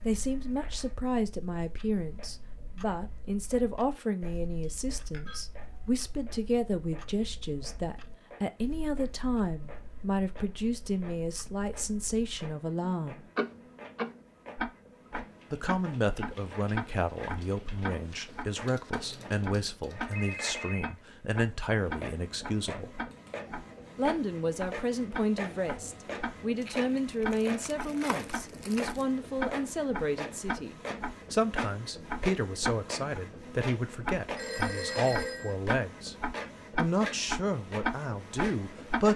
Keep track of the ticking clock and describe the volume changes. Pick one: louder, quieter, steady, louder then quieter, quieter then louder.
louder.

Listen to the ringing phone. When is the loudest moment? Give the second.
35 s.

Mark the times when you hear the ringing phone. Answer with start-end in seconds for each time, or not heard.
4.6-5.5, 18.9-20.9, 34.4-35.5.